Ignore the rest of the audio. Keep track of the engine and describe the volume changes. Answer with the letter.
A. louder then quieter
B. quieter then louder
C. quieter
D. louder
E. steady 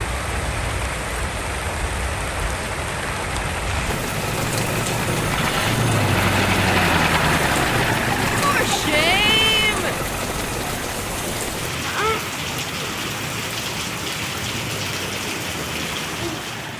A.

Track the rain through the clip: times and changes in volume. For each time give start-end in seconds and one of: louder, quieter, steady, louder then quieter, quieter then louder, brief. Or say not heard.
0.0-16.7 steady.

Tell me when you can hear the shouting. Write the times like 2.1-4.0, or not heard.
8.4-9.9.